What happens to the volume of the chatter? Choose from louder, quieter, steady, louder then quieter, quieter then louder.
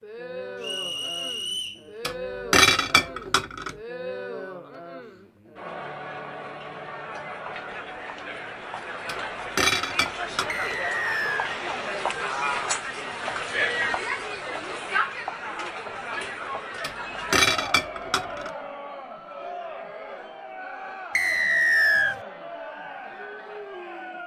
louder then quieter.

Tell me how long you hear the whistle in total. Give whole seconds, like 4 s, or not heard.
3 s.